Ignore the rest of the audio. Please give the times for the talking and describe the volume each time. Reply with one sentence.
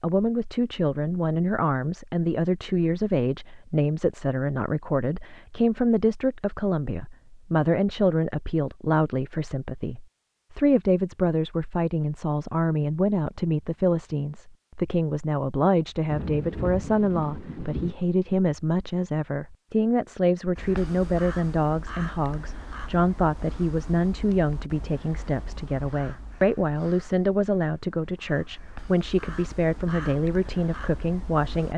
The talking can be heard from 0.0 to 31.7 s, at a steady volume.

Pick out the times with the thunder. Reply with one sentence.
The thunder can be heard from 16.1 to 17.9 s.